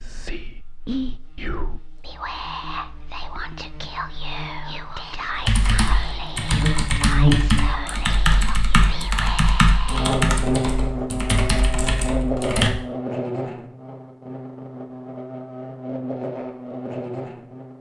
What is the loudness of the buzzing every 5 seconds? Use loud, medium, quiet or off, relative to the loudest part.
quiet, loud, loud, medium.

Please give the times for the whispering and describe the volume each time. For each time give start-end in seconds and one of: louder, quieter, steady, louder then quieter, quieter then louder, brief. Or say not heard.
0.0-10.2 steady.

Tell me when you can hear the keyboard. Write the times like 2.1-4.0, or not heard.
5.3-12.7.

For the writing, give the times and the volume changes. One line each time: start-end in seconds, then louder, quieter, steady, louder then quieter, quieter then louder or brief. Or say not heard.
not heard.